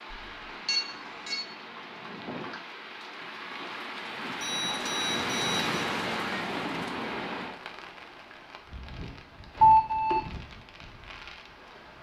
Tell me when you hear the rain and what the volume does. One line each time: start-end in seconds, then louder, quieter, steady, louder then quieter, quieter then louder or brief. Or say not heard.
0.0-11.9 louder then quieter.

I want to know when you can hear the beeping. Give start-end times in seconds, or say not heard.
0.1-1.4, 4.4-5.9, 9.6-10.2.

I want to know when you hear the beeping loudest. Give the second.
10 s.